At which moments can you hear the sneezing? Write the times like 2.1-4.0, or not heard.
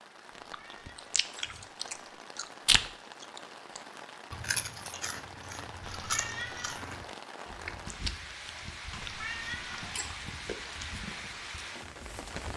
not heard.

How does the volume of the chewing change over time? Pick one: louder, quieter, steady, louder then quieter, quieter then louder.
quieter.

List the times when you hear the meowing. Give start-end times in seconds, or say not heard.
0.3-2.2, 5.8-6.8, 8.9-10.2.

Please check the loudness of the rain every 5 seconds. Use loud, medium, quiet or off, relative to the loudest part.
medium, loud, loud.